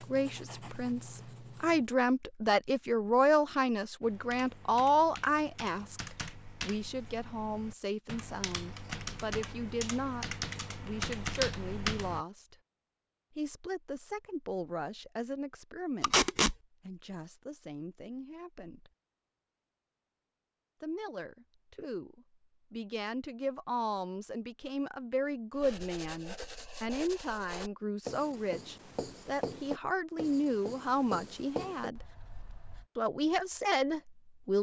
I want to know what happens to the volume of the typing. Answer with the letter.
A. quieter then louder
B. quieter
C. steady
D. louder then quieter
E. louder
E.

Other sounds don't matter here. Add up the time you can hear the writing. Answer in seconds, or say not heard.
9 s.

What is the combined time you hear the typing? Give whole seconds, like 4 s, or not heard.
8 s.